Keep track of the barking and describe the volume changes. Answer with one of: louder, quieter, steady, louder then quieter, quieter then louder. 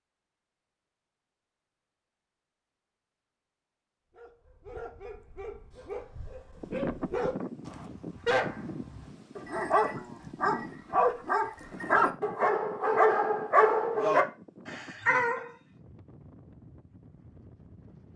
louder.